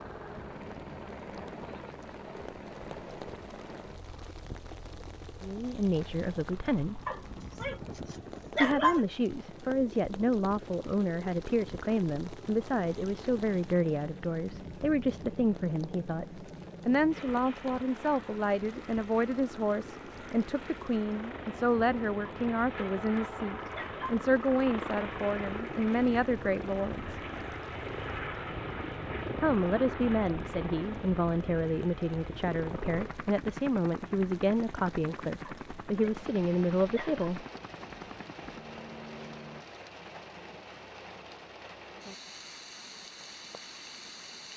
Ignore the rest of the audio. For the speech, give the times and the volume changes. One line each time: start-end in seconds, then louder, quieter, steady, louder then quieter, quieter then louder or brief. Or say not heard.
5.4-7.0 brief
8.6-27.2 steady
29.4-37.5 steady.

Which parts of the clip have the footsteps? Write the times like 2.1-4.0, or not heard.
not heard.